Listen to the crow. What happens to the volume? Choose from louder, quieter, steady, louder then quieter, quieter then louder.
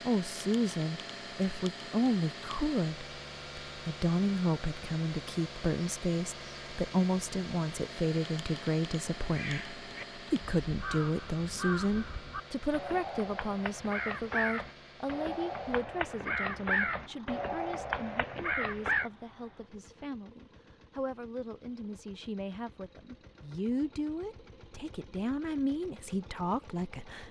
louder.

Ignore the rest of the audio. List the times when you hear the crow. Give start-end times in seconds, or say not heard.
9.2-19.1.